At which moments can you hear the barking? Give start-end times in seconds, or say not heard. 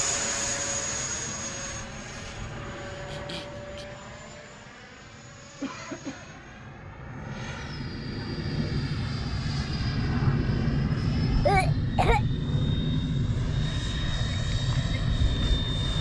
not heard.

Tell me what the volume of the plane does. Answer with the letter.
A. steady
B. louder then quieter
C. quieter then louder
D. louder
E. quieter
C.